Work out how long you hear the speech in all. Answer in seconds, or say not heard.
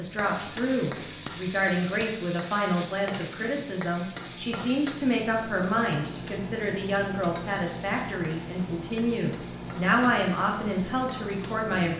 12 s.